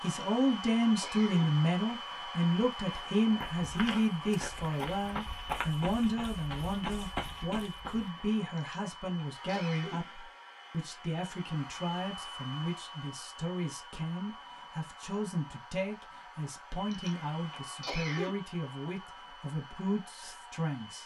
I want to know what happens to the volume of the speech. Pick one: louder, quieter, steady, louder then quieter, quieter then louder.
quieter.